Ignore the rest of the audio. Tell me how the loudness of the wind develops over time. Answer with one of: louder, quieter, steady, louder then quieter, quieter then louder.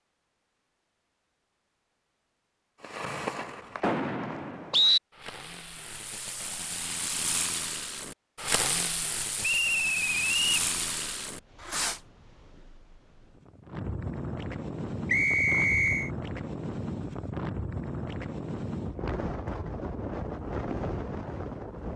louder.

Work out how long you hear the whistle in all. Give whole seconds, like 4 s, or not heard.
4 s.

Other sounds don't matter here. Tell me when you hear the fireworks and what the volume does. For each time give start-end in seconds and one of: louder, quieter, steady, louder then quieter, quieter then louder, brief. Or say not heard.
2.8-12.0 quieter then louder.